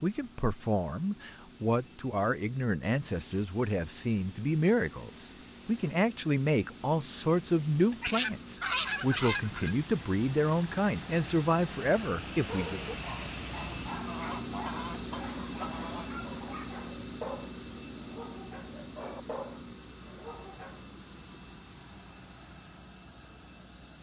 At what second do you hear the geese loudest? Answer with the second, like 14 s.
9 s.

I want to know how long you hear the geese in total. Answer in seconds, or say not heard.
4 s.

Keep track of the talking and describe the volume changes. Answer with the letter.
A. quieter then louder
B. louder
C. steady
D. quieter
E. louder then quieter
C.